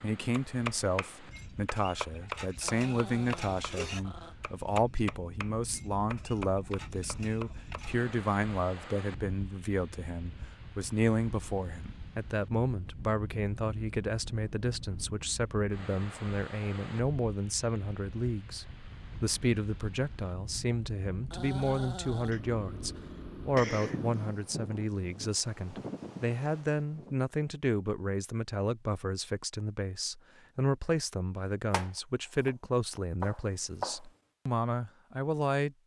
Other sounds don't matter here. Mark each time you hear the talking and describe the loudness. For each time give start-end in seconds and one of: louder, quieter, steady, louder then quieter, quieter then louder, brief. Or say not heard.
0.0-35.8 steady.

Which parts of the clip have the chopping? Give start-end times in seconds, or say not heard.
0.3-8.0, 31.7-34.0.